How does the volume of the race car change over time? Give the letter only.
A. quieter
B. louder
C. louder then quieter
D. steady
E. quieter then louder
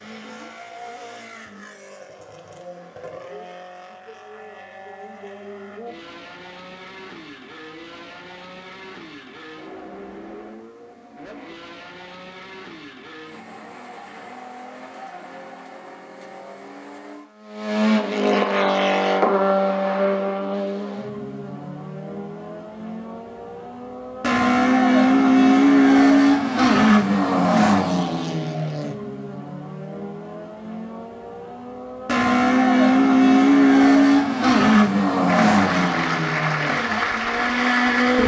B.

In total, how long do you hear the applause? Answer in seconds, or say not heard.
3 s.